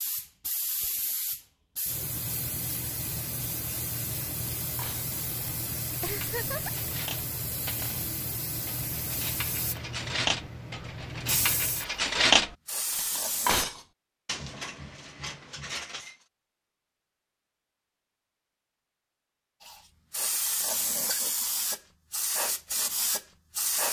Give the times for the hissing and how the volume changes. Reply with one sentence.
The hissing can be heard from 0.0 to 13.7 s, at a steady volume; and from 19.6 to 23.8 s, at a steady volume.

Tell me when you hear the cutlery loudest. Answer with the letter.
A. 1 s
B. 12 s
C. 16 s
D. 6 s
B.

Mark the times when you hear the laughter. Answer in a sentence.
The laughter can be heard from 6.0 to 6.8 s.